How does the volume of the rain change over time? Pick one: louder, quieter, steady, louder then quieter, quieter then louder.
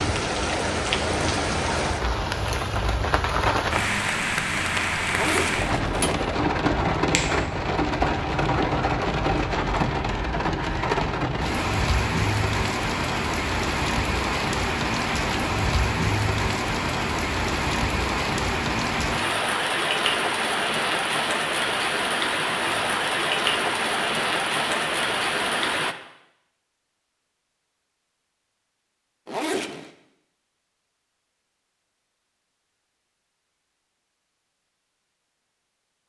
steady.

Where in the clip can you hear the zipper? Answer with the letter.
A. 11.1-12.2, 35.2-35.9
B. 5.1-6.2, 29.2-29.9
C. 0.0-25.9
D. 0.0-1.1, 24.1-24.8
B.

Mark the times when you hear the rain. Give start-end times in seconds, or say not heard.
0.0-25.9.